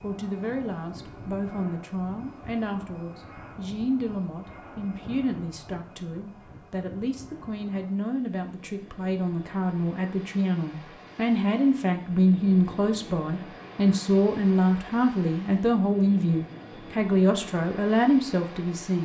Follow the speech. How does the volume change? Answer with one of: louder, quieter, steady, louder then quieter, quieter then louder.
louder.